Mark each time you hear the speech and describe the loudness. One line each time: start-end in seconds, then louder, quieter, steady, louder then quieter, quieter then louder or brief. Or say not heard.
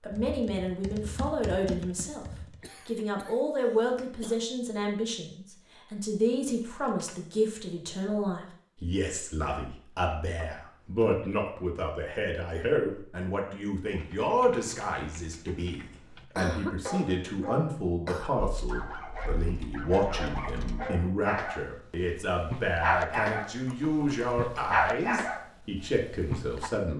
0.0-2.2 brief
2.9-26.9 steady.